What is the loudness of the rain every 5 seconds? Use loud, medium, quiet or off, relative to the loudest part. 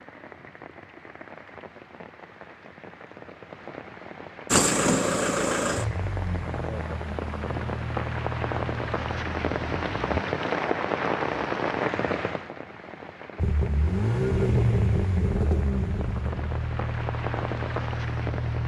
quiet, loud, loud, medium.